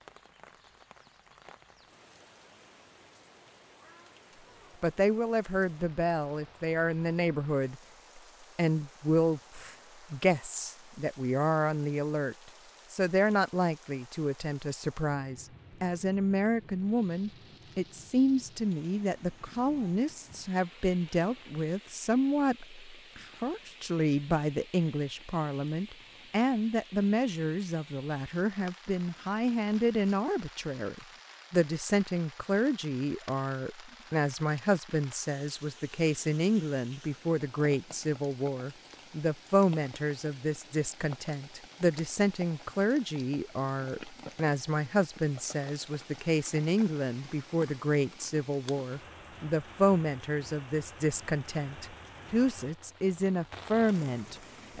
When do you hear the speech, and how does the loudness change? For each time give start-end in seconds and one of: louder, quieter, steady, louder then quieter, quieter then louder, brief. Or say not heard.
4.8-54.7 steady.